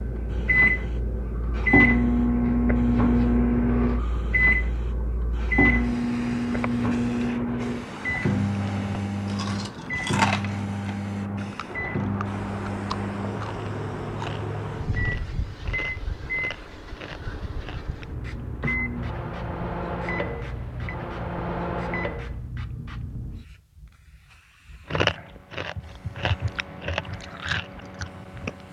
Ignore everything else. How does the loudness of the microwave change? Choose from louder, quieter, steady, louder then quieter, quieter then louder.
quieter.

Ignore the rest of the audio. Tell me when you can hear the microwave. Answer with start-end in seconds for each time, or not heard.
0.0-22.4.